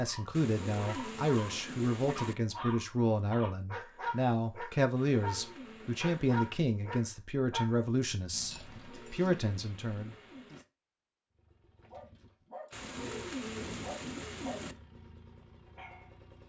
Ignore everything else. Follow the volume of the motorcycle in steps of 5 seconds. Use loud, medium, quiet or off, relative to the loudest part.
off, off, loud, medium.